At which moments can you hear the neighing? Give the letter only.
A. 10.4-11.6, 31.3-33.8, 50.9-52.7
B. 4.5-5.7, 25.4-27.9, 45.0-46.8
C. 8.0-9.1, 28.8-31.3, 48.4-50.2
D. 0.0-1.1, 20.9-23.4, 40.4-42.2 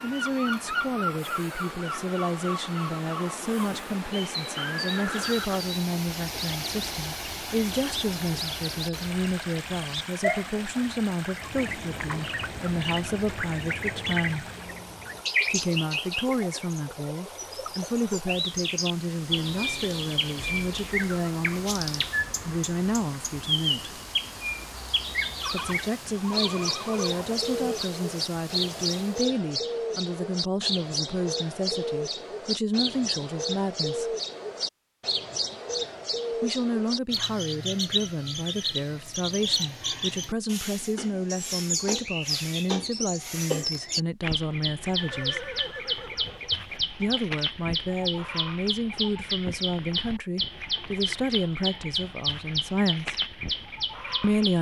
B.